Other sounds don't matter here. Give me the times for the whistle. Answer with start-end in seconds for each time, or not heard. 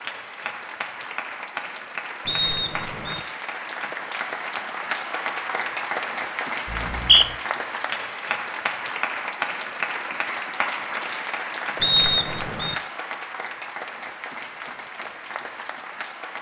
2.2-3.2, 6.7-7.2, 11.8-12.8.